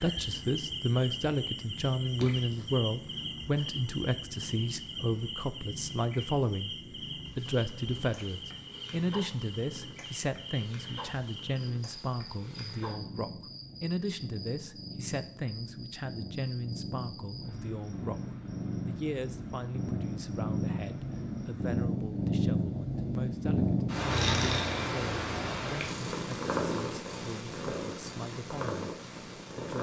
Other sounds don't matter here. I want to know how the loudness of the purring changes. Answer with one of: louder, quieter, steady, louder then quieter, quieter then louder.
louder.